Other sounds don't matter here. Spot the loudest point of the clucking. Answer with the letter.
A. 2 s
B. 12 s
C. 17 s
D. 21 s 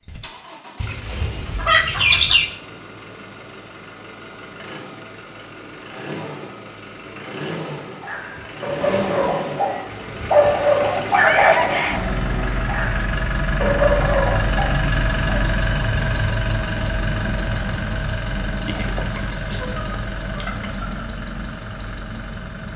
A.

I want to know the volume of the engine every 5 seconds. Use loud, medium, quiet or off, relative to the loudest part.
quiet, medium, loud, loud, medium.